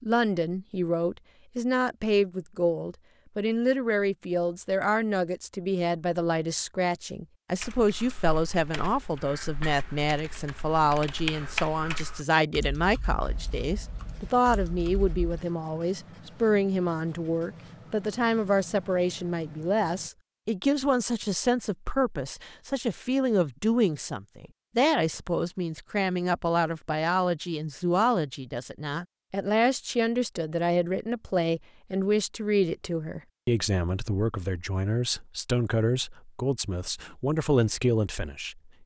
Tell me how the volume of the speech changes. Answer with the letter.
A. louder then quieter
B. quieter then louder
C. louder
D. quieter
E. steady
E.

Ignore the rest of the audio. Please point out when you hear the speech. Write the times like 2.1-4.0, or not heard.
0.0-38.7.